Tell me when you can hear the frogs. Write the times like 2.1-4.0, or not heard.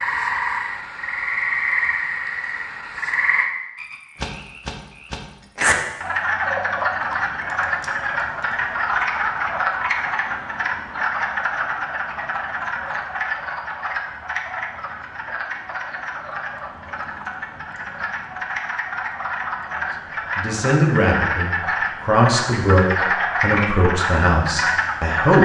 0.0-25.4.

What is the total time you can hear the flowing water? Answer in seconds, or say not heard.
not heard.